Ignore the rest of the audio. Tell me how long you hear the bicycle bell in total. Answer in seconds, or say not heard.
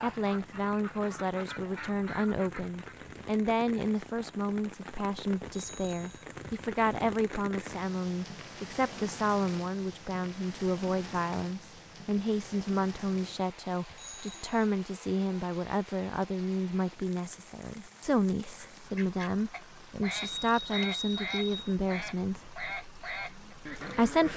3 s.